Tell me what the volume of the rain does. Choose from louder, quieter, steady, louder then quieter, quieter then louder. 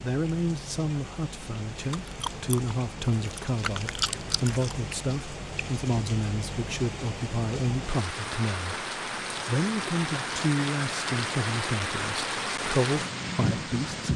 louder.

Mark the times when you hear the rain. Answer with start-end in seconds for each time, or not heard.
0.0-14.1.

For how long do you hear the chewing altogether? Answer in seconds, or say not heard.
3 s.